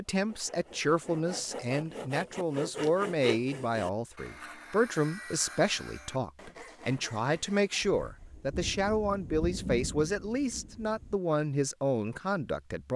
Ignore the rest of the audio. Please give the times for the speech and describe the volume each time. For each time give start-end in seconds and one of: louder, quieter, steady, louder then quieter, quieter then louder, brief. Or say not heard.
0.0-12.9 steady.